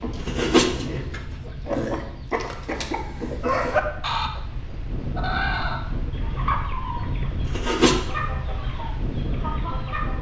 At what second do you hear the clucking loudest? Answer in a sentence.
The volume of the clucking peaks at 4 seconds.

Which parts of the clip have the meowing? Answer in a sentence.
The meowing can be heard from 0.2 to 1.2 s and from 7.5 to 8.0 s.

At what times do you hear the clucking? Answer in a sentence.
The clucking can be heard from 0.0 to 10.1 s.